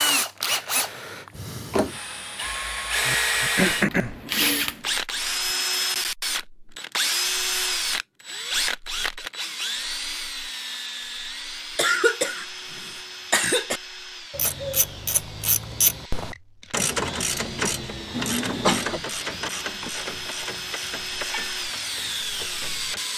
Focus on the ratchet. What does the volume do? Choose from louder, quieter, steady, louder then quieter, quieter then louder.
quieter.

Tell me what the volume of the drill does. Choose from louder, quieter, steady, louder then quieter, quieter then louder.
quieter then louder.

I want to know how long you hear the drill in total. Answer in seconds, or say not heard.
23 s.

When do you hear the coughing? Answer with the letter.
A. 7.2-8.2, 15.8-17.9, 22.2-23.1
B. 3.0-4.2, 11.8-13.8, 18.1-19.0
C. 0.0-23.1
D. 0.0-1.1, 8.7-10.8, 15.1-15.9
B.